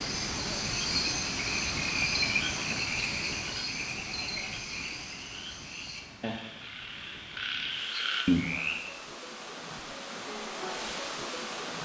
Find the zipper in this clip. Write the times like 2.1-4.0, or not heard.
not heard.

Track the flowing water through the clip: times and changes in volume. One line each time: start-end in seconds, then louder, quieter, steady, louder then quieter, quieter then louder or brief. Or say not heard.
0.0-11.7 quieter then louder.